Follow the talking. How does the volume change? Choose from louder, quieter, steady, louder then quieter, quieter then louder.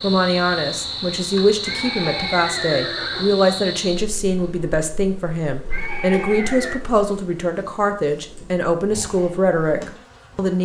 steady.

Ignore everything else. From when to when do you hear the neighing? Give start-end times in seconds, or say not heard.
1.6-3.4, 5.7-6.8.